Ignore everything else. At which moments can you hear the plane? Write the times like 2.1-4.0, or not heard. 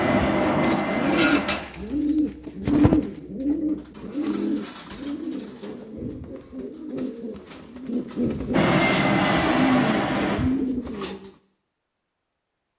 0.0-1.6, 8.5-10.4.